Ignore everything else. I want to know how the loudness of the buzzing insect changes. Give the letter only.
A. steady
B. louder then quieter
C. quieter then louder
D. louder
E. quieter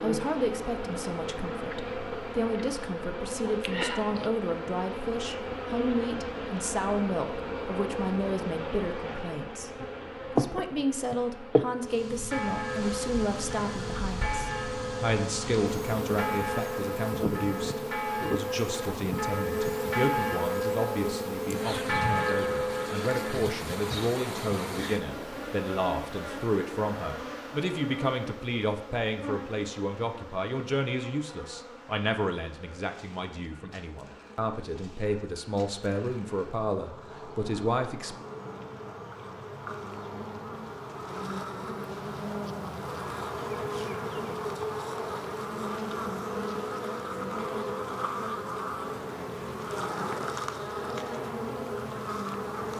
C.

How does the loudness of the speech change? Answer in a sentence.
The volume of the speech stays about the same.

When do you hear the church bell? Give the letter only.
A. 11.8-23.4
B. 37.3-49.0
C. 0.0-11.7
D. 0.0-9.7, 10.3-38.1
A.